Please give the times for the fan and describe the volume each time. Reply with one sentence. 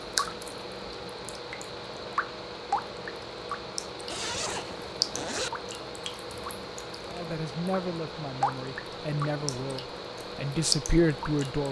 The fan can be heard from 0.0 to 11.6 s, at a steady volume.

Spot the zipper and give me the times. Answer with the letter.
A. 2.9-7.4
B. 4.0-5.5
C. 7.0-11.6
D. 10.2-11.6
B.